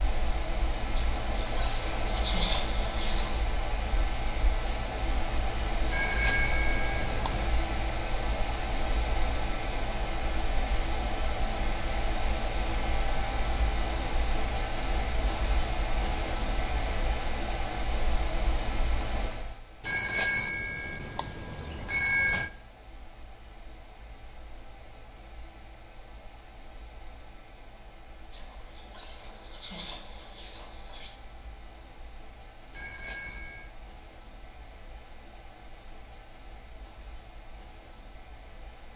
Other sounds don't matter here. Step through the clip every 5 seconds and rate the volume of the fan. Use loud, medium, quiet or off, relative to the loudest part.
loud, loud, loud, loud, quiet, quiet, quiet, quiet.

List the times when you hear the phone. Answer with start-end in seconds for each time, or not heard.
5.9-7.5, 19.8-22.5, 32.7-33.7.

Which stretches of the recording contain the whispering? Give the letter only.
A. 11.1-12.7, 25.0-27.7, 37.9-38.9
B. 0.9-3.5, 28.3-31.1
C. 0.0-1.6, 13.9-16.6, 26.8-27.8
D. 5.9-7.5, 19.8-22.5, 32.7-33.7
B.